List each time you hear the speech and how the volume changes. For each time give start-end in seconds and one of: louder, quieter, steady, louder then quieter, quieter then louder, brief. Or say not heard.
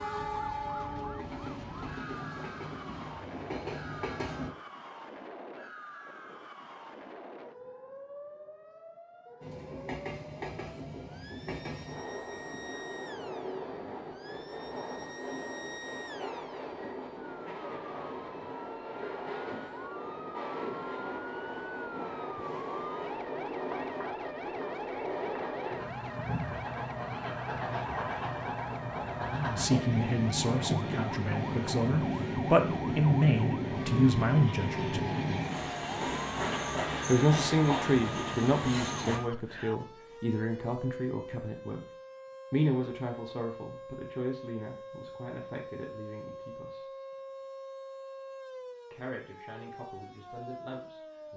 29.2-35.0 quieter then louder
37.0-41.9 quieter
42.5-46.9 quieter
48.9-51.3 brief.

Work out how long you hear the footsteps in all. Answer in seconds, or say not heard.
not heard.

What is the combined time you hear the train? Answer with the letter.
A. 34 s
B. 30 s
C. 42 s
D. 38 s
A.